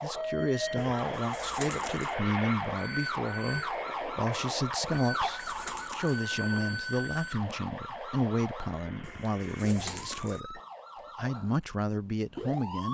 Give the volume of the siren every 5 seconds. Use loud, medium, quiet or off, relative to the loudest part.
loud, loud, medium.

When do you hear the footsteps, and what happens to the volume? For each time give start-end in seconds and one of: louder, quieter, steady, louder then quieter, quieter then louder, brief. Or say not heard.
not heard.